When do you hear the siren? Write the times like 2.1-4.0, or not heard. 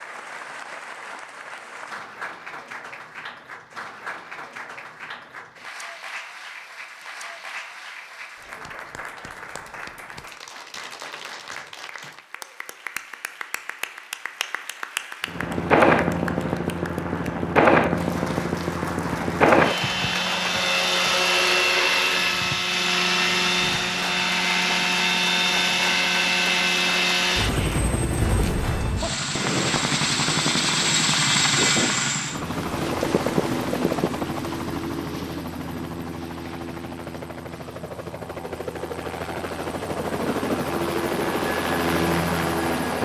not heard.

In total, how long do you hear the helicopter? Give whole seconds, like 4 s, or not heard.
28 s.